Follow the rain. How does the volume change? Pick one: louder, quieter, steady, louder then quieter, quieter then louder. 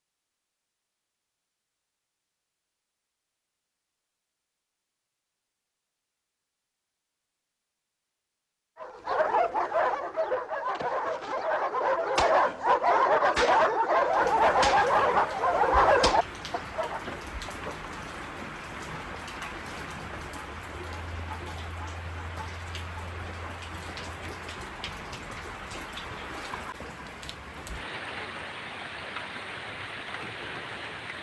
steady.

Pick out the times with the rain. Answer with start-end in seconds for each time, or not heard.
14.0-31.1.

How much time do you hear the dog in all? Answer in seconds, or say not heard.
8 s.